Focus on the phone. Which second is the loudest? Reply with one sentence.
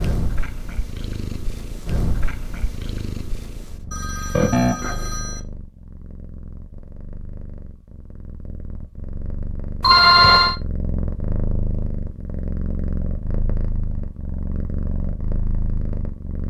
The loudest moment of the phone is at 10 seconds.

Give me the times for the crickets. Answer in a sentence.
The crickets can't be heard in this clip.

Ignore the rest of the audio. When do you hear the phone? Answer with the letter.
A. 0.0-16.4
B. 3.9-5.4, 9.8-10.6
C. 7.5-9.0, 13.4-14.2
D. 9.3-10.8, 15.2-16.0
B.